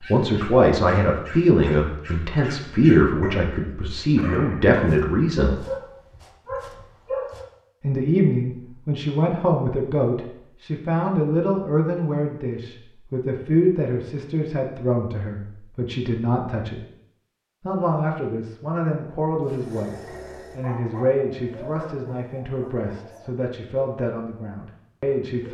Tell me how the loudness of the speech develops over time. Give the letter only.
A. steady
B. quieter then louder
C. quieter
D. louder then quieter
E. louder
C.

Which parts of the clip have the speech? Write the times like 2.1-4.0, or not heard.
0.1-5.7, 7.8-16.9, 17.6-25.5.